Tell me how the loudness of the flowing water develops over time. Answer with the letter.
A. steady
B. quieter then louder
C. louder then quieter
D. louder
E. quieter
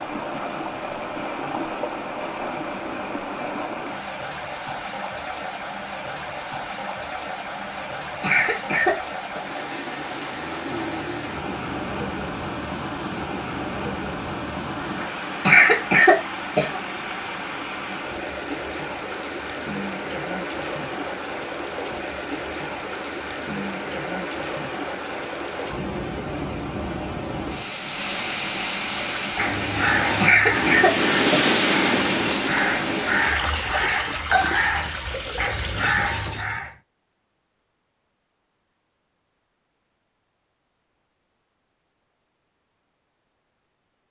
D.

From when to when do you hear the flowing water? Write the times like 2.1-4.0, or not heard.
0.0-36.5.